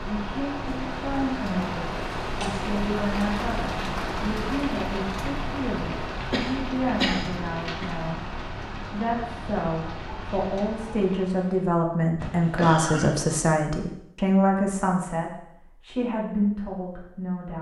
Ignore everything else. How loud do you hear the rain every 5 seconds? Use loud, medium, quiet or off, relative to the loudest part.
loud, loud, medium, off.